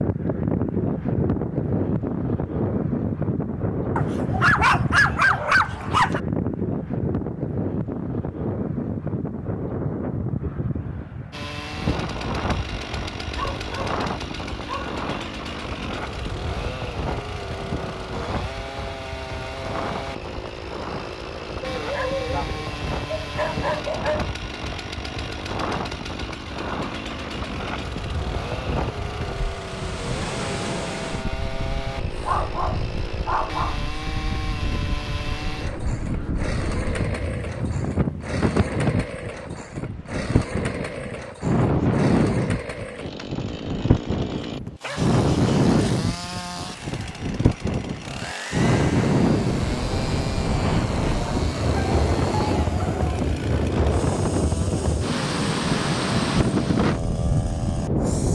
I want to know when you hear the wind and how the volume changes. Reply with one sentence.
You can hear the wind from 0.0 to 58.3 s, getting quieter then louder.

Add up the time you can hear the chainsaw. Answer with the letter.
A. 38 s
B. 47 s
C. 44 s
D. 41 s
B.